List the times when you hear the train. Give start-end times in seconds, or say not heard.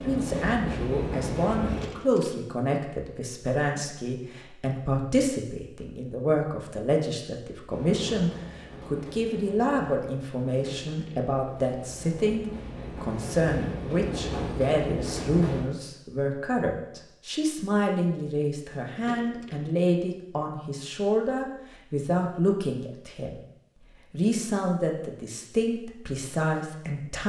0.0-1.9, 7.7-15.7.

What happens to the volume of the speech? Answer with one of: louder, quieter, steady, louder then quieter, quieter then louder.
steady.